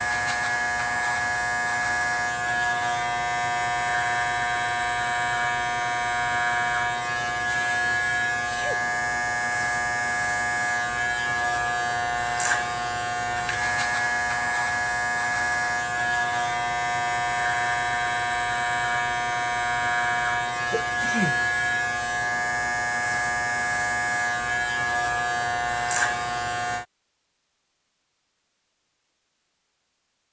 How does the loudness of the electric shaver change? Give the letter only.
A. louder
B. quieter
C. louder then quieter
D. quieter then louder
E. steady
E.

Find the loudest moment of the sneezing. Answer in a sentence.
The volume of the sneezing peaks at 21 seconds.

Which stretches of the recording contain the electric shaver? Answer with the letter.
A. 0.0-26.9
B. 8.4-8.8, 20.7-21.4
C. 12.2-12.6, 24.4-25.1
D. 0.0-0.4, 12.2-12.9
A.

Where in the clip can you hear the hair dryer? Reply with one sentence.
You can't hear the hair dryer here.